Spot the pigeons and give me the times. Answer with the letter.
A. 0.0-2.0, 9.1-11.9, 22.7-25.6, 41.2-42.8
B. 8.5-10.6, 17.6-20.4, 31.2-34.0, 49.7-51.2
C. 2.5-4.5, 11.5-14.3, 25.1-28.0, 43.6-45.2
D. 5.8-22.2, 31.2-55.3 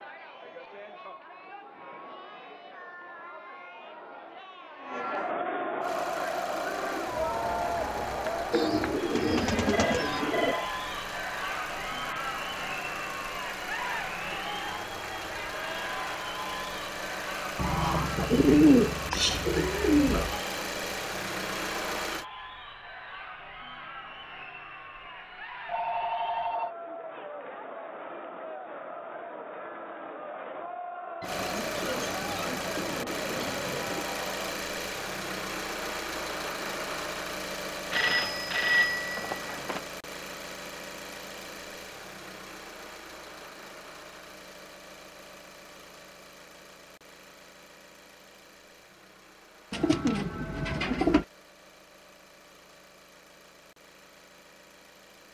B.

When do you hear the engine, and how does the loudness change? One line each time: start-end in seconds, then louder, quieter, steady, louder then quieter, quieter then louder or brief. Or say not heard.
5.8-22.2 louder
31.2-55.3 quieter.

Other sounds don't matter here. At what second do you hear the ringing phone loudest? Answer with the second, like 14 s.
39 s.